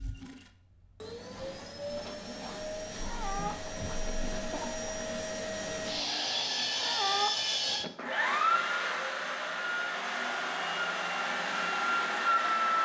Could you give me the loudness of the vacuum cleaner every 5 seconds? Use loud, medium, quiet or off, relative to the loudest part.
medium, loud, loud.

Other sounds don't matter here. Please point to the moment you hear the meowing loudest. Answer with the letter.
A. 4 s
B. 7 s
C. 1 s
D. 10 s
B.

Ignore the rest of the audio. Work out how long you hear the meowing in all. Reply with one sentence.
You can hear the meowing for 3 seconds altogether.